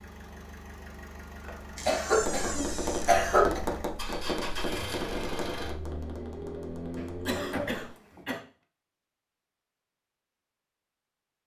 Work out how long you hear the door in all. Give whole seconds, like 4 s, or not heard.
2 s.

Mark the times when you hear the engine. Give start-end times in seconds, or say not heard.
0.0-8.2.